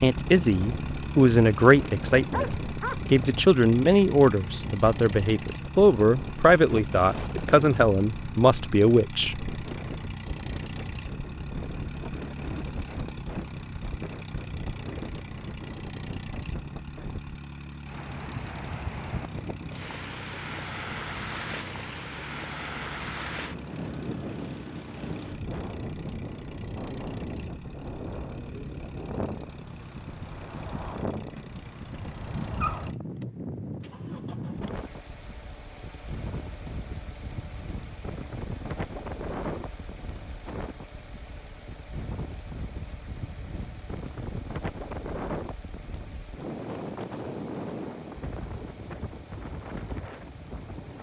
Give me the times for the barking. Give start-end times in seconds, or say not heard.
2.3-3.0, 31.4-33.0.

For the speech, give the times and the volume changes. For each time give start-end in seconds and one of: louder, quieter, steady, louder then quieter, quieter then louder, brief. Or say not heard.
0.0-9.6 steady.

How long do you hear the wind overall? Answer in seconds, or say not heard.
51 s.